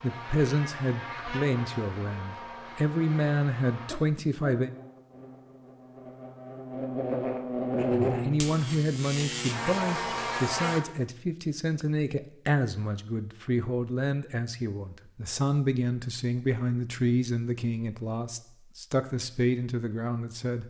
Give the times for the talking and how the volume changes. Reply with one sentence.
The talking can be heard from 0.0 to 4.7 s, getting quieter then louder; and from 7.9 to 20.6 s, at a steady volume.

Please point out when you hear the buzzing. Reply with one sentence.
The buzzing can be heard from 0.0 to 10.8 s.